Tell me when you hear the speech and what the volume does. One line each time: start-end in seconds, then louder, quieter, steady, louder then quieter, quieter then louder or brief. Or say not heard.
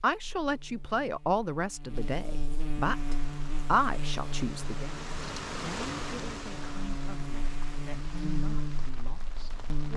0.0-9.9 quieter.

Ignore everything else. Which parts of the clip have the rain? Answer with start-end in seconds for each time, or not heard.
2.8-9.9.